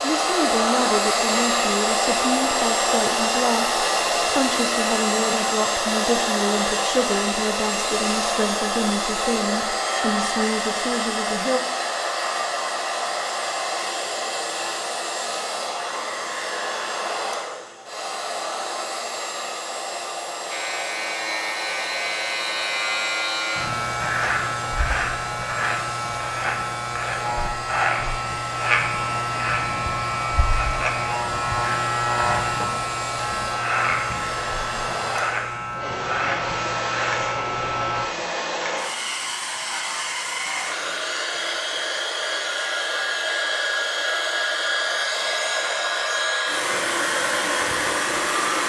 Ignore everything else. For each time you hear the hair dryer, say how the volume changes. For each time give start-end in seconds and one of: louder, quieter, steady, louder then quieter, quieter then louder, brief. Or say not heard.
0.0-48.6 quieter then louder.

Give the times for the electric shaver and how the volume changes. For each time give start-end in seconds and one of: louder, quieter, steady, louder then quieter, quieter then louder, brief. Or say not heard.
20.5-38.0 steady.